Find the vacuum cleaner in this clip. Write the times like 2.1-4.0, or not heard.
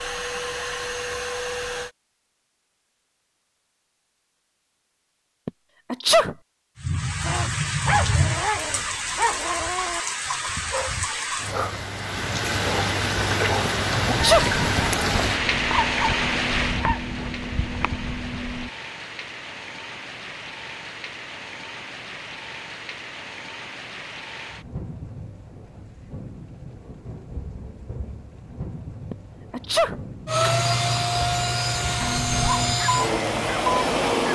0.0-1.9, 30.2-34.3.